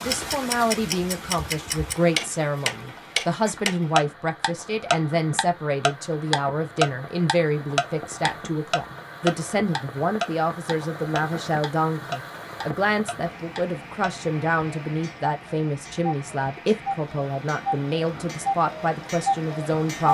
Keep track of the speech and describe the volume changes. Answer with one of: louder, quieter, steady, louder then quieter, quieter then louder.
steady.